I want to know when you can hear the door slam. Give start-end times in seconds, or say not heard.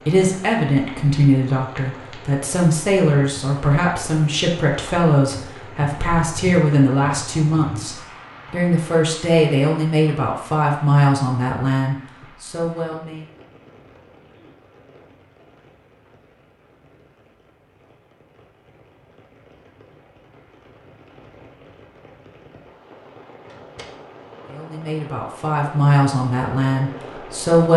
23.4-24.0.